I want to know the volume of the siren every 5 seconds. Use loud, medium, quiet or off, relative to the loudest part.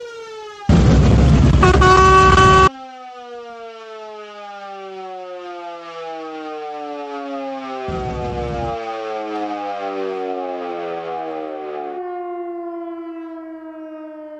medium, loud, loud.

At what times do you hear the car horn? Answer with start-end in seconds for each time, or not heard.
0.7-2.7, 7.8-8.8.